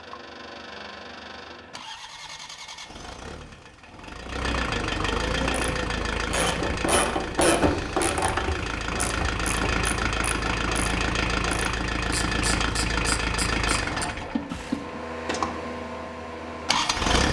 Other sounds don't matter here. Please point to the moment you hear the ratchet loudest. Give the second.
8 s.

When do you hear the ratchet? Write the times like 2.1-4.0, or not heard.
5.3-14.9.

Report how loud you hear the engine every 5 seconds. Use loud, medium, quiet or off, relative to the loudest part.
medium, loud, loud, loud.